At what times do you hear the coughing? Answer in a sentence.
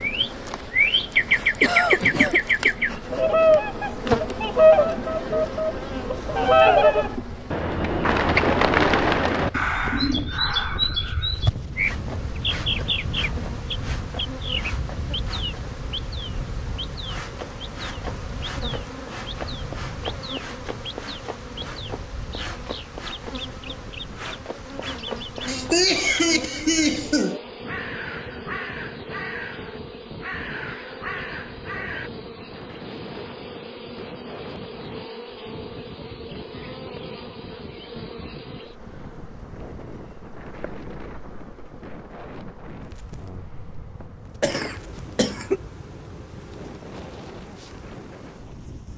The coughing can be heard from 1.6 to 2.8 s, from 25.4 to 27.4 s and from 44.0 to 45.6 s.